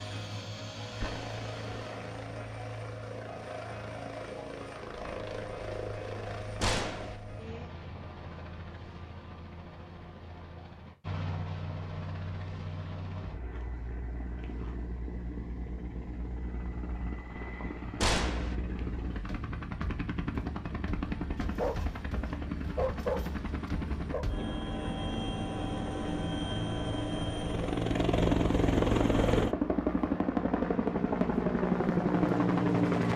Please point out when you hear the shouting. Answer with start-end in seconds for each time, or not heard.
not heard.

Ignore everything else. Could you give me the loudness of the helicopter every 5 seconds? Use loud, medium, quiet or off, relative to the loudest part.
quiet, quiet, quiet, quiet, medium, loud, loud.